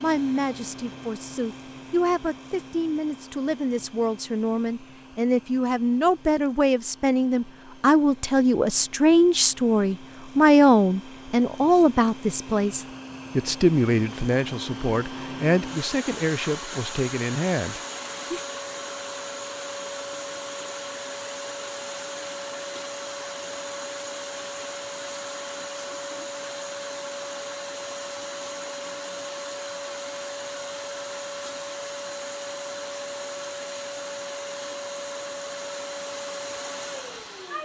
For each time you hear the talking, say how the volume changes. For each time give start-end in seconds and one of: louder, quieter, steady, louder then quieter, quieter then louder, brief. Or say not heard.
0.0-18.4 louder then quieter.